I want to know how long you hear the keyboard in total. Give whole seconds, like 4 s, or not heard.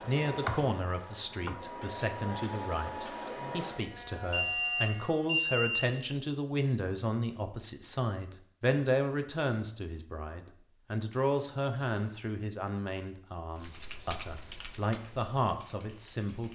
4 s.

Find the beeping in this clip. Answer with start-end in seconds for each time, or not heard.
4.3-5.8.